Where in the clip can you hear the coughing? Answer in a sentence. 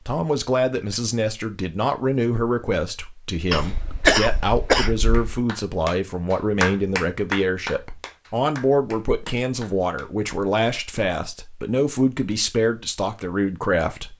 The coughing can be heard from 3.5 to 5.2 s.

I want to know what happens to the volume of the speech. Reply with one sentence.
The volume of the speech stays about the same.